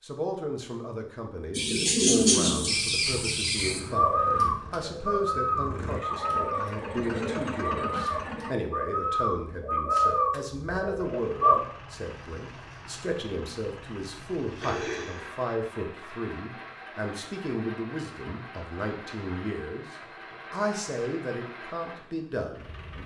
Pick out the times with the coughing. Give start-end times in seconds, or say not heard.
14.6-15.4.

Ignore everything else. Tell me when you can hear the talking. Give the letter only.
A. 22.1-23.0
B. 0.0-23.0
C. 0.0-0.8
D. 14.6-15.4
B.